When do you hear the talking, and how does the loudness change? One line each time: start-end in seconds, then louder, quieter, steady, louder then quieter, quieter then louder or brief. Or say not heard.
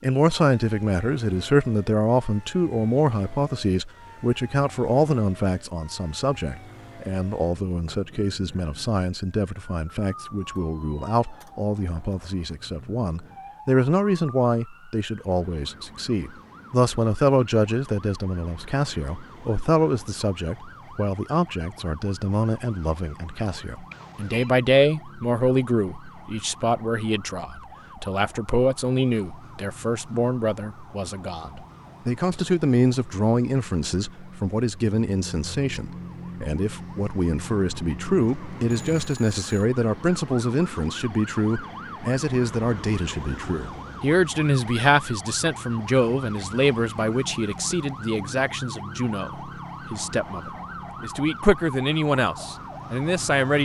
0.0-53.6 steady.